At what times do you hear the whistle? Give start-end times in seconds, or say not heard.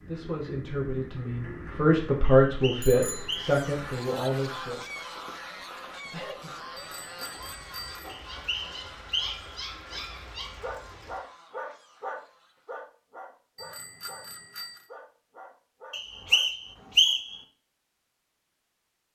2.2-3.6, 8.2-9.6, 15.9-17.4.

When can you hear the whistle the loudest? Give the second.
17 s.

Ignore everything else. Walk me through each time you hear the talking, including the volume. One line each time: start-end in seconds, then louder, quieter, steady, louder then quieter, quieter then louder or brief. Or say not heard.
0.1-4.8 louder then quieter.